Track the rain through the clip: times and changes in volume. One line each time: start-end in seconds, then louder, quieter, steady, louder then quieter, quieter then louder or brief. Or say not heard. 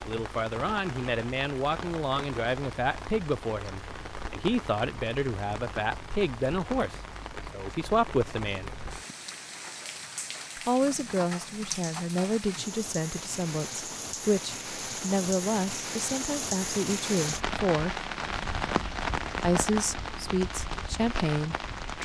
0.0-22.0 louder.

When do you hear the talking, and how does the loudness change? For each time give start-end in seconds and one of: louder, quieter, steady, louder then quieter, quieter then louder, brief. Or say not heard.
0.1-8.7 steady
10.6-18.0 steady
19.4-22.0 brief.